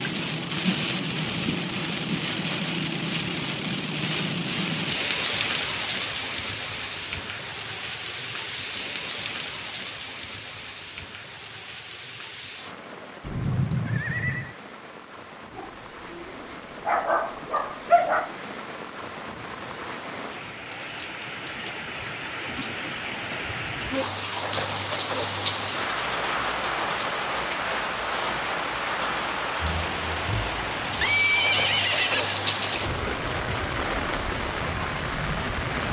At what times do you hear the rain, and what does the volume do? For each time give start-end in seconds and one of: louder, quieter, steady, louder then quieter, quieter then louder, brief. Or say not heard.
0.0-35.8 quieter then louder.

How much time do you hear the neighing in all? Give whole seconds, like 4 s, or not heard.
3 s.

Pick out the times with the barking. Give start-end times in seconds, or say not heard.
15.6-18.4.